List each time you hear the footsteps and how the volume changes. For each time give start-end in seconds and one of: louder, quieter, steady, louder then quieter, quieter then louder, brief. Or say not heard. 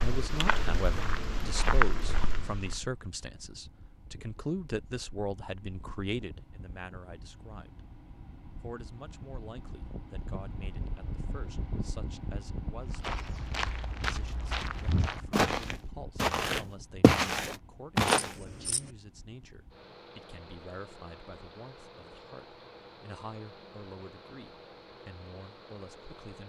0.0-2.8 brief
12.9-18.3 louder.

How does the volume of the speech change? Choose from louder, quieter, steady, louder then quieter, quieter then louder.
quieter.